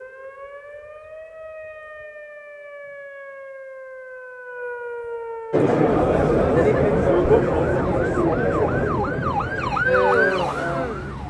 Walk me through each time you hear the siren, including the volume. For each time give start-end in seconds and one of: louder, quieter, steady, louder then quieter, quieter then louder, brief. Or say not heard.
0.0-11.2 louder.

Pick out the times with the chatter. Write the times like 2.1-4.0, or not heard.
5.5-11.2.